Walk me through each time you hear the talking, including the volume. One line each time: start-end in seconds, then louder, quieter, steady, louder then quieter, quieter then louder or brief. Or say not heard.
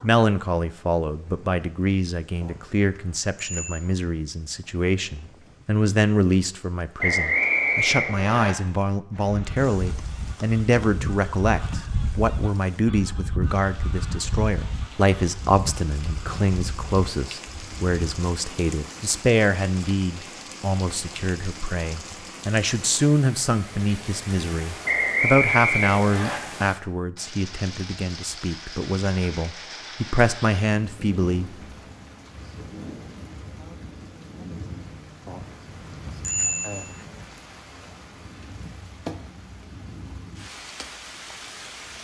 0.0-31.6 steady.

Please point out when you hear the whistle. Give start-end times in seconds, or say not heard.
7.0-8.6, 24.9-26.4.